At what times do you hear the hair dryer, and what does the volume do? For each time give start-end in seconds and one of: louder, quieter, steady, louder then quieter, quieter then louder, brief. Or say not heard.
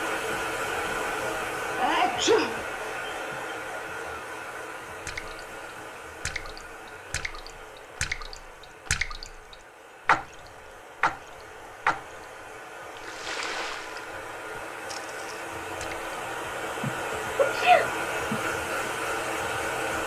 0.0-20.0 quieter then louder.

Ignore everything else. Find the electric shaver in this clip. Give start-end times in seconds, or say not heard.
not heard.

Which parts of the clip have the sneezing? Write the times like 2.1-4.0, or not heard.
1.8-3.5, 16.8-18.4.